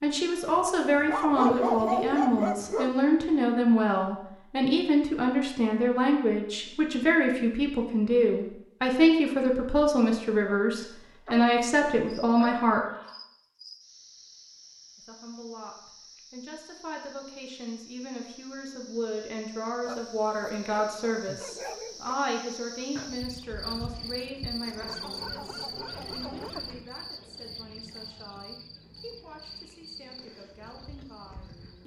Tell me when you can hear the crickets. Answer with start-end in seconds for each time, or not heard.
12.1-31.8.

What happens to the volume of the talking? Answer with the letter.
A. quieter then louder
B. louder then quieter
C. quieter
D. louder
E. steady
C.